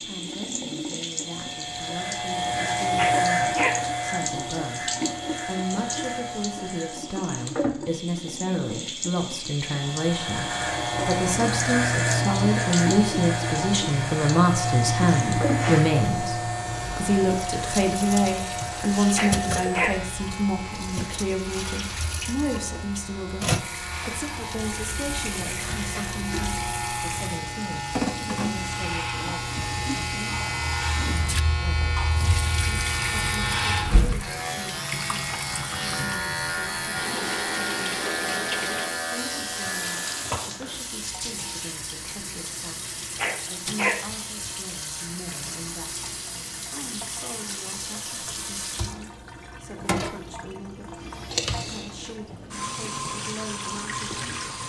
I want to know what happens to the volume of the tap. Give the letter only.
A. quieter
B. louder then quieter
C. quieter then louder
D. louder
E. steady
E.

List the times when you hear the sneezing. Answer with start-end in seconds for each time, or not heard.
3.0-3.8, 19.1-19.9, 43.1-44.0.